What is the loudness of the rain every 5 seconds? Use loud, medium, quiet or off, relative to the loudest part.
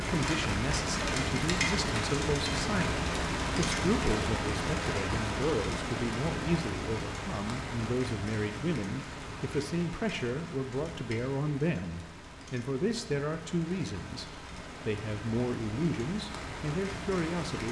loud, medium, quiet, medium.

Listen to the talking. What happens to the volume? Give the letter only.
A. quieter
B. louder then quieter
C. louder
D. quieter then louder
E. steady
E.